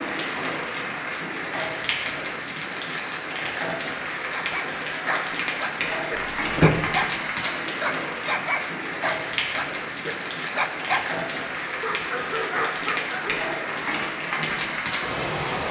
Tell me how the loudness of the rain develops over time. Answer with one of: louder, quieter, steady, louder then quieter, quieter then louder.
steady.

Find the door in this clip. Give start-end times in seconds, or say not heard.
6.2-6.8.